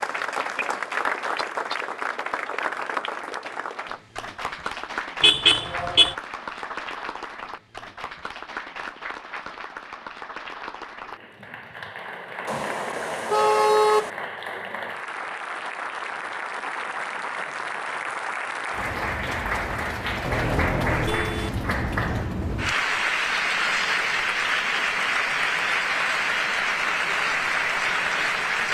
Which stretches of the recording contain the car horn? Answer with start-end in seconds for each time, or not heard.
5.2-6.2, 12.4-14.1, 20.2-22.2.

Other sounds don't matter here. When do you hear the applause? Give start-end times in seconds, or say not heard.
0.0-28.7.